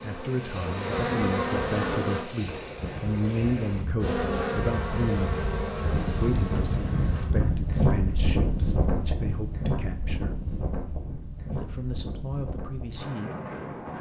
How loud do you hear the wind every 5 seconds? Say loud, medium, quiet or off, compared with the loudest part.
medium, loud, medium.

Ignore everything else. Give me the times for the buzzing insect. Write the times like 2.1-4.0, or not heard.
0.0-2.3, 4.0-7.3.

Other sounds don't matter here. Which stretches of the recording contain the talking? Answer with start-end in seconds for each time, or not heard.
0.0-10.4, 11.4-13.9.